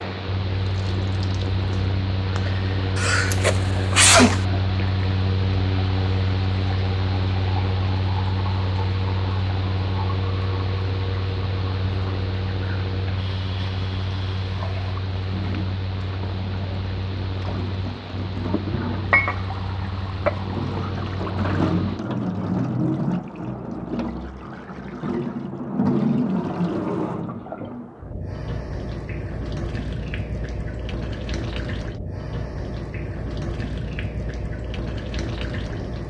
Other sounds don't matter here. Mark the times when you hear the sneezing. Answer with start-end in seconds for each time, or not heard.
3.0-4.5.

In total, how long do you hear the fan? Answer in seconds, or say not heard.
22 s.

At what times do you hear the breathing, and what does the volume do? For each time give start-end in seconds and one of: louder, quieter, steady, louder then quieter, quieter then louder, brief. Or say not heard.
not heard.